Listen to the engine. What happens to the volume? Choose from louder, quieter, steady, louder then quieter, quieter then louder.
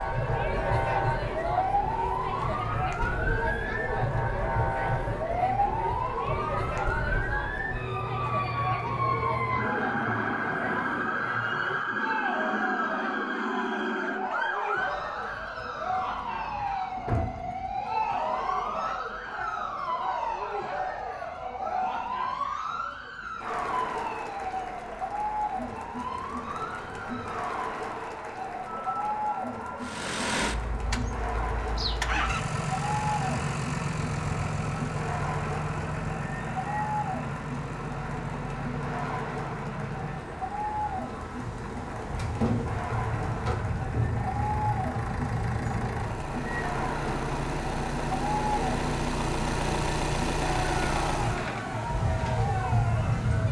quieter then louder.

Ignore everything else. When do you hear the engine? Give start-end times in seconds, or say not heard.
29.8-51.6.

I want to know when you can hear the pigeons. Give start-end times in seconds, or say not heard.
not heard.